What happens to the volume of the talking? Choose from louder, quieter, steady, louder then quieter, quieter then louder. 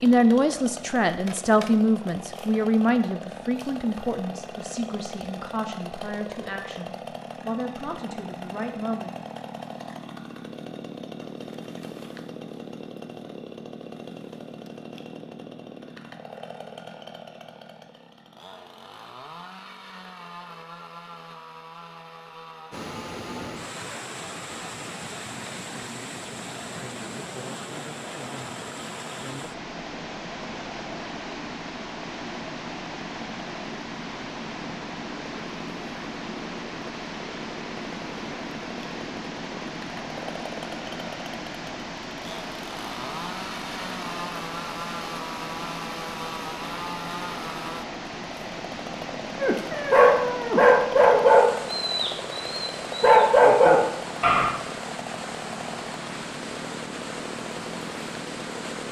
quieter.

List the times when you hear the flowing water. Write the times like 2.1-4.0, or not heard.
22.7-58.8.